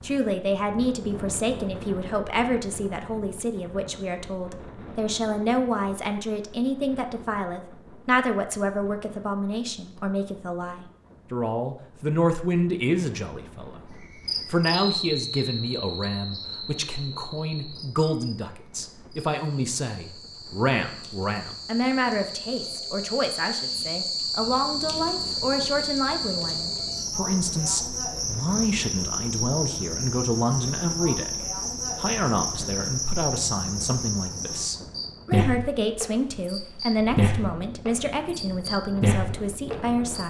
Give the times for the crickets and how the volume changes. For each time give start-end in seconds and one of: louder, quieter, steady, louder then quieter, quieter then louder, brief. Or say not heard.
13.9-40.2 louder.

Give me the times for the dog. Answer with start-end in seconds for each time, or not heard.
not heard.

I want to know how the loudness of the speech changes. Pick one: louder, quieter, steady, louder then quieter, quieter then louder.
steady.